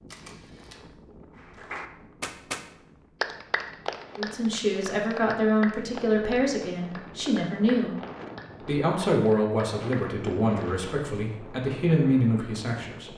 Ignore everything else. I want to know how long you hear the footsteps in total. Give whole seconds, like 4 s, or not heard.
not heard.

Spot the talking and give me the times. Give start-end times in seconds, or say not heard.
4.2-8.0, 8.7-13.1.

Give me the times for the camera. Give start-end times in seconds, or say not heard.
0.1-0.8.